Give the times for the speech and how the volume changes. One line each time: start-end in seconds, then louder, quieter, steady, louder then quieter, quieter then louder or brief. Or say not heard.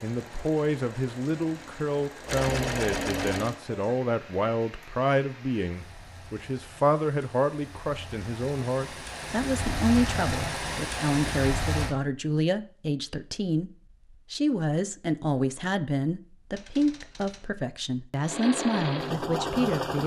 0.0-13.7 steady
14.3-20.0 steady.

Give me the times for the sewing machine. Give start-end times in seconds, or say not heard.
0.0-3.6, 18.1-20.0.